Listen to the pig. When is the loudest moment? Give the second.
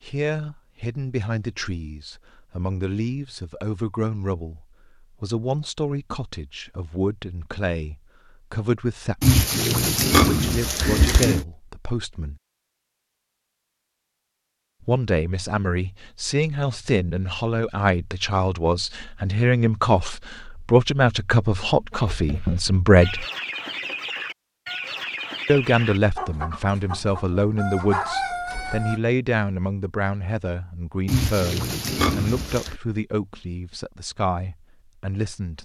10 s.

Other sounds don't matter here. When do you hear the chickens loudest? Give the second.
28 s.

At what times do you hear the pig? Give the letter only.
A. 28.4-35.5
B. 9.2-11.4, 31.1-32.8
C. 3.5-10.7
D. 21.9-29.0
B.